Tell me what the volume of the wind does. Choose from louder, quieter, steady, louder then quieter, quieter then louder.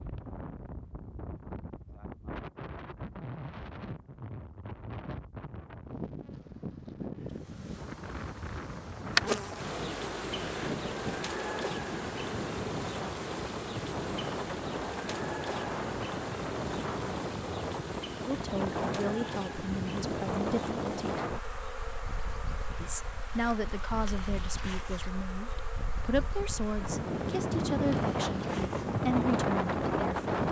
louder.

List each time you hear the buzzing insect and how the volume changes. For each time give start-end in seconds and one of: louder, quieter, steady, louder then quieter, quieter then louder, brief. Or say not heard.
7.4-30.4 quieter.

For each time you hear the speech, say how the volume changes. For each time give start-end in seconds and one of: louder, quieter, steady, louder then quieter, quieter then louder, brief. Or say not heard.
18.2-21.1 brief
22.8-30.2 quieter then louder.